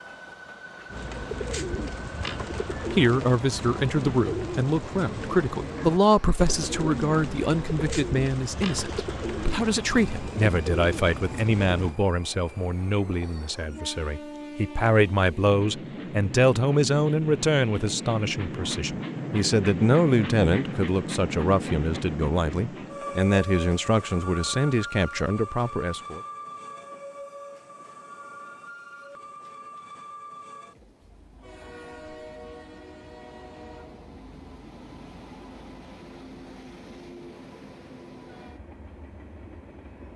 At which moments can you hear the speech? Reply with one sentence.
The speech can be heard from 2.9 to 26.2 s.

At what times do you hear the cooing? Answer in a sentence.
You can hear the cooing from 0.9 to 11.9 s.